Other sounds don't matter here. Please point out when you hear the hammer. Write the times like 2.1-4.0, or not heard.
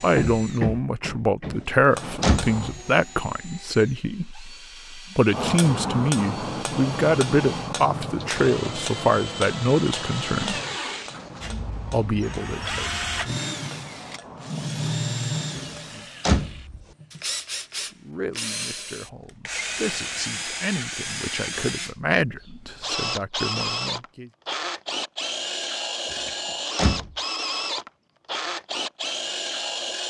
0.0-2.8, 5.3-16.1.